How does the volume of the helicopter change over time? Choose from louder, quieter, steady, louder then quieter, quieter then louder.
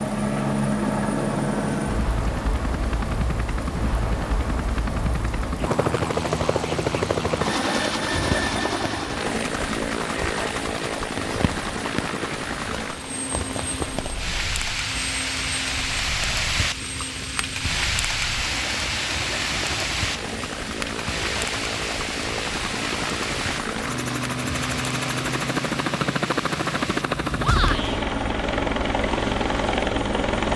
quieter then louder.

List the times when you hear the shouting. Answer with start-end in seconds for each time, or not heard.
27.4-28.0.